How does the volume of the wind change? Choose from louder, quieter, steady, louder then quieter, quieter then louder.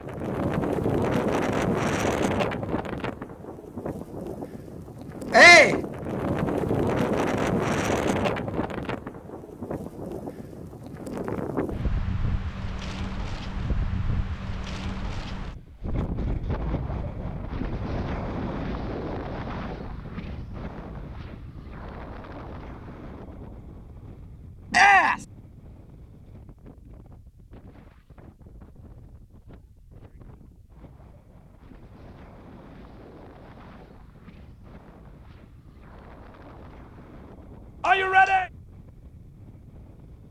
quieter.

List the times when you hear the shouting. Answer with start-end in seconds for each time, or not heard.
5.3-5.8, 24.7-25.2, 37.8-38.5.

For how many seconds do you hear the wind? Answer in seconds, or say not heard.
40 s.